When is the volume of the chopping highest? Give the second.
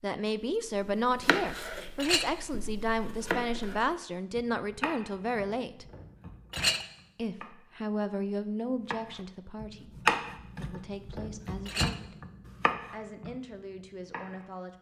10 s.